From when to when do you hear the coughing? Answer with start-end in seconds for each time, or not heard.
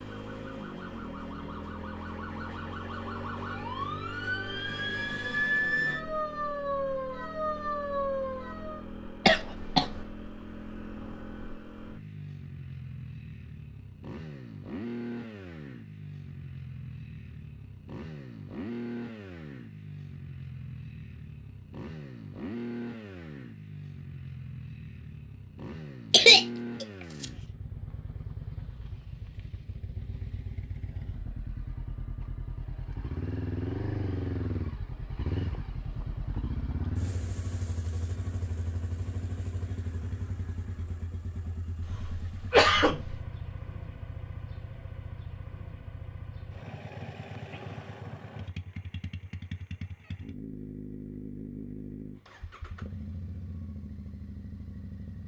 9.2-10.0, 26.1-27.2, 41.9-43.2.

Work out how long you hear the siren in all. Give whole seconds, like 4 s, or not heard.
9 s.